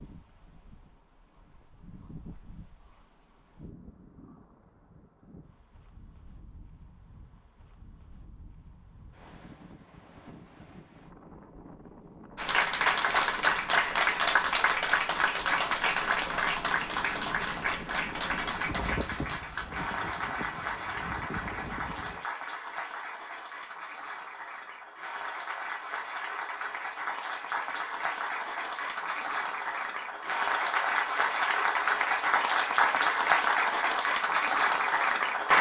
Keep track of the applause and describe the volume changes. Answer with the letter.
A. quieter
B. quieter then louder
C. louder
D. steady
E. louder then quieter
B.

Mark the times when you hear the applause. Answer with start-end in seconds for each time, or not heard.
12.3-35.5.